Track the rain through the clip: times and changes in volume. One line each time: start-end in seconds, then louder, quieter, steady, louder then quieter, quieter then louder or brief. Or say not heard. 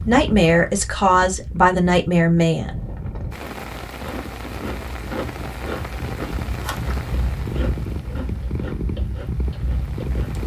3.3-10.4 quieter.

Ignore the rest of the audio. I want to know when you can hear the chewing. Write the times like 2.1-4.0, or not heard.
2.6-10.4.